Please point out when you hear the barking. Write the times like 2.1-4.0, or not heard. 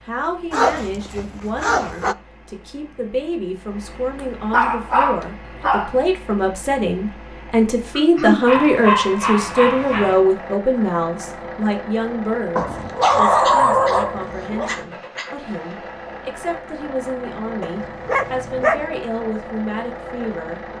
0.5-2.1, 4.5-6.0, 8.4-10.2, 12.6-14.7, 17.6-18.9.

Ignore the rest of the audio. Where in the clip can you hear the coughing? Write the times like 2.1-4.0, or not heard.
8.0-8.4, 13.0-14.0, 14.7-15.3.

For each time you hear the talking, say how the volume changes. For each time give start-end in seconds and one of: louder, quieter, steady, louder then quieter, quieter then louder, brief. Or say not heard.
0.0-20.6 louder then quieter.